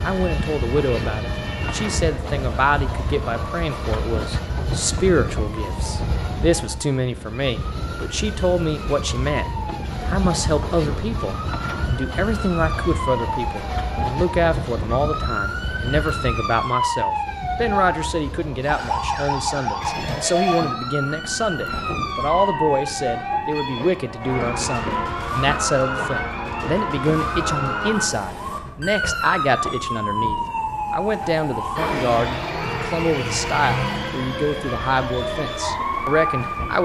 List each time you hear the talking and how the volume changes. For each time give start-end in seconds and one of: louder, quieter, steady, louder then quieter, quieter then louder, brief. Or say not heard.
0.0-9.4 steady
10.1-36.8 steady.